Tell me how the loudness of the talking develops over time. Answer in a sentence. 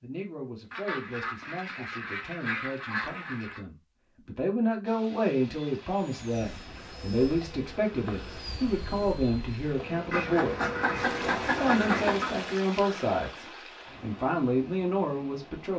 The loudness of the talking goes up.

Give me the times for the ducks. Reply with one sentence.
The ducks can be heard from 0.7 to 3.6 s and from 10.1 to 12.3 s.